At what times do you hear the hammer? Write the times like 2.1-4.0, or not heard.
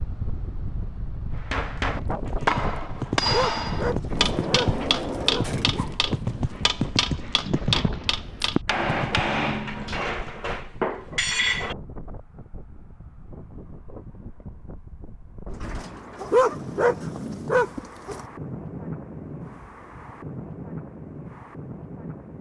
1.4-11.8.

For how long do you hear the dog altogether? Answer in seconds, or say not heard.
4 s.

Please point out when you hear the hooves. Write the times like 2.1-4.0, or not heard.
1.9-9.2.